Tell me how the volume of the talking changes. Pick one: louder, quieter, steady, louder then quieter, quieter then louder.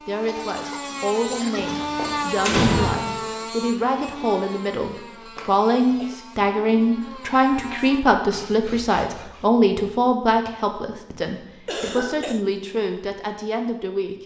louder then quieter.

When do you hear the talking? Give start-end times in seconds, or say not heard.
0.1-14.2.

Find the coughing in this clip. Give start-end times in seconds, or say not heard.
0.2-1.9, 5.0-6.2, 11.7-12.4.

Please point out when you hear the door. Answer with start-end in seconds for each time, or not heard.
1.7-3.1.